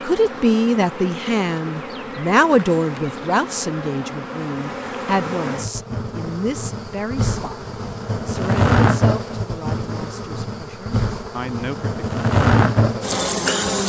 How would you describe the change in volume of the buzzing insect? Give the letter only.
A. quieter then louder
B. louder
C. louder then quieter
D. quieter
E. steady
B.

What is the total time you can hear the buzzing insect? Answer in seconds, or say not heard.
14 s.